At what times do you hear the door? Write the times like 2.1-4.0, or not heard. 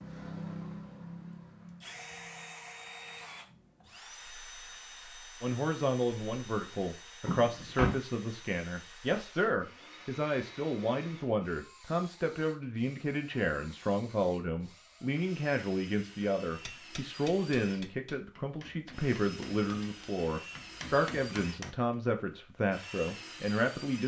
7.2-8.0.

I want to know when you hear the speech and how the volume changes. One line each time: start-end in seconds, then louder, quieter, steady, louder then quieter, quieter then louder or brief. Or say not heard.
5.4-24.0 steady.